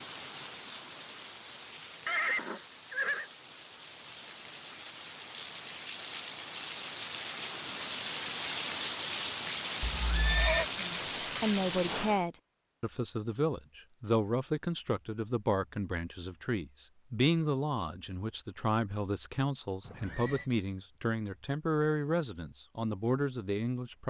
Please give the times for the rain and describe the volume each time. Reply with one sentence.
You can hear the rain from 0.0 to 12.2 s, getting louder.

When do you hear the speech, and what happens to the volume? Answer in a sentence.
You can hear the speech from 10.8 to 24.0 s, at a steady volume.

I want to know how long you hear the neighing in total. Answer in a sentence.
You can hear the neighing for 3 seconds altogether.